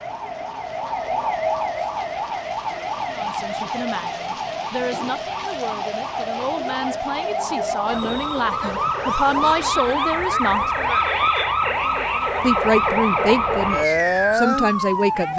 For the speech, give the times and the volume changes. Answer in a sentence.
You can hear the speech from 3.1 to 10.7 s, getting louder; and briefly from 12.4 to 15.3 s.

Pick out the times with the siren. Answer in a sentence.
The siren can be heard from 0.0 to 15.3 s.